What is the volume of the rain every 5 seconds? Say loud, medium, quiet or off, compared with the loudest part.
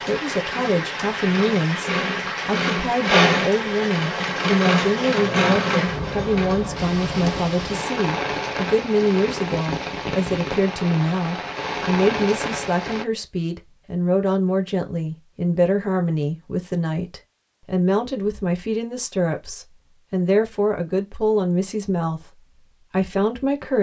loud, loud, loud, off, off.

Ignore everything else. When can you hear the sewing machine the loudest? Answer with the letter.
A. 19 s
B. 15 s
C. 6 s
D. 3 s
D.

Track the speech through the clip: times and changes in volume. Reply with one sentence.
You can hear the speech from 0.0 to 23.7 s, at a steady volume.